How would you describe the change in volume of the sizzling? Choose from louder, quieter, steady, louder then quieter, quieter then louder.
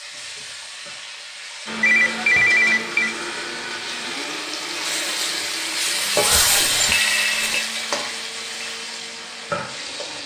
louder then quieter.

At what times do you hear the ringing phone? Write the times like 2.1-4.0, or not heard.
1.8-3.1, 6.3-7.7.